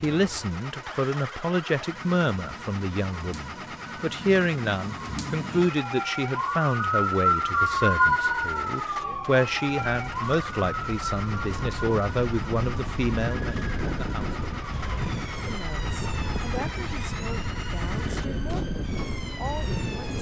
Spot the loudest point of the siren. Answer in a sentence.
The volume of the siren peaks at 8 seconds.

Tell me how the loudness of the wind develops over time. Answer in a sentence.
The volume of the wind goes up.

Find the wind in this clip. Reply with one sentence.
The wind can be heard from 8.9 to 20.1 s.